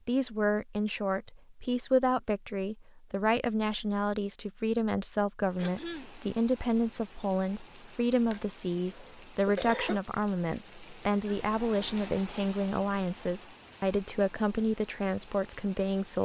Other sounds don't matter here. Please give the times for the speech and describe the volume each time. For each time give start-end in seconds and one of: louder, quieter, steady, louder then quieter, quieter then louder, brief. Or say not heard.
0.1-16.1 steady.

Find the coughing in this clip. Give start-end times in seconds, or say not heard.
5.5-6.2, 8.3-10.0.